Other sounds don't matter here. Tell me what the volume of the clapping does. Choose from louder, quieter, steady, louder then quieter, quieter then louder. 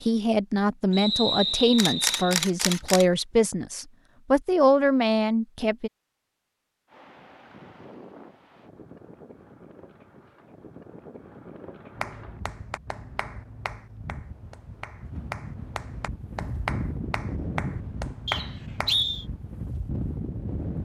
louder.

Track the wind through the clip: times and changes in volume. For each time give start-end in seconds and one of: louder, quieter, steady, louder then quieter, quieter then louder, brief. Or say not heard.
6.8-20.8 louder.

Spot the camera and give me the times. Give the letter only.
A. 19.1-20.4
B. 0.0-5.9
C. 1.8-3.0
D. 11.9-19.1
C.